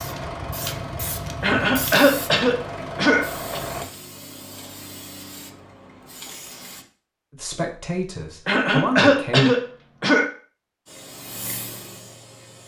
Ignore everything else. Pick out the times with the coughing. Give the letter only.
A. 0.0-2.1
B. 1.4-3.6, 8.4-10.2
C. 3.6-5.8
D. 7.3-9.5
B.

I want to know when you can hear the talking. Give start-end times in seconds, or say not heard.
7.3-9.5.